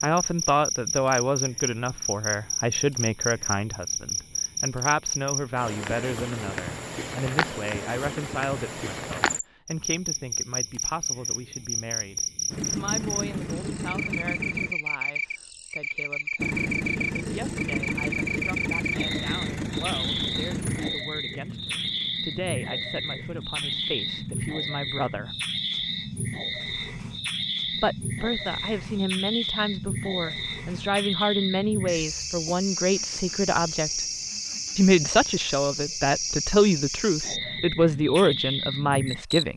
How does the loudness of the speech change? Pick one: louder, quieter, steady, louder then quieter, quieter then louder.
quieter then louder.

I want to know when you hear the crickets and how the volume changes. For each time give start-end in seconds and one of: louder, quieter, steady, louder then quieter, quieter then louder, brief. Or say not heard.
0.0-39.5 steady.